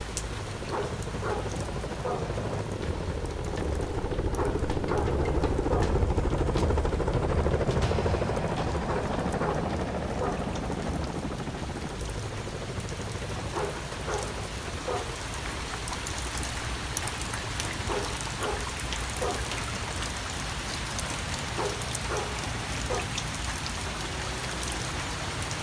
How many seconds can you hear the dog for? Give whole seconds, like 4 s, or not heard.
10 s.